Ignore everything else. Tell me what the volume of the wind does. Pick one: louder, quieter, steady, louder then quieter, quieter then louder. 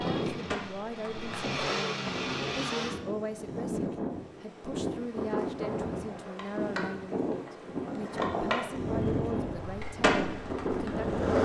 louder.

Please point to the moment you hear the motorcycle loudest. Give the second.
2 s.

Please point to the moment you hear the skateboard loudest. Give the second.
11 s.